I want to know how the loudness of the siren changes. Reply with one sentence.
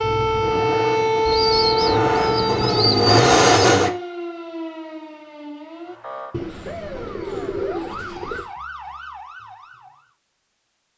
The volume of the siren goes down.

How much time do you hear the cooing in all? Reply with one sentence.
The cooing can be heard for 5 seconds in total.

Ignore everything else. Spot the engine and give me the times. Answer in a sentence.
You can hear the engine from 0.0 to 3.9 s.